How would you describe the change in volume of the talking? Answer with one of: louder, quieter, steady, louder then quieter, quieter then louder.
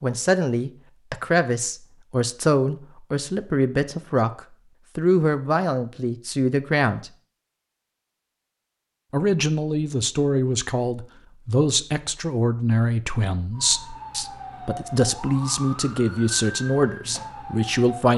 steady.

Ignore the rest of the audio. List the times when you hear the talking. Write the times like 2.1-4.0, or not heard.
0.0-7.1, 9.1-18.1.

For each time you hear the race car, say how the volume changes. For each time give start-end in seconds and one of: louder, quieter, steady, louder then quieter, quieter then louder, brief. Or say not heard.
not heard.